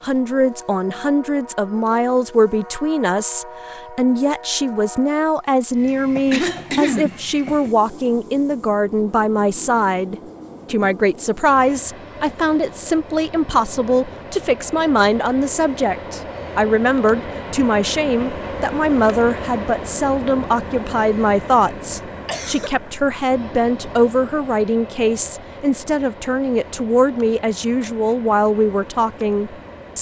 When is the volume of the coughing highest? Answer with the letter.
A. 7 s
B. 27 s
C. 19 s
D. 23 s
A.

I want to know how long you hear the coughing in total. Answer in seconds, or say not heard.
2 s.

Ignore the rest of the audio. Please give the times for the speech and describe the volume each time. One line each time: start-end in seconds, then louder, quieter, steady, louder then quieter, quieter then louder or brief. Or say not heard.
0.0-29.9 steady.